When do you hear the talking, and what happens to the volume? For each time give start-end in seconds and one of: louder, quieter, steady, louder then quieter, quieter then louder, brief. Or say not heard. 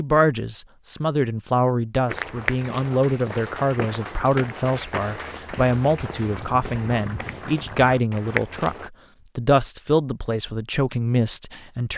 0.0-11.9 steady.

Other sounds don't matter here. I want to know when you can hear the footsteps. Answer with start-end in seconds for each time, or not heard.
2.0-8.9.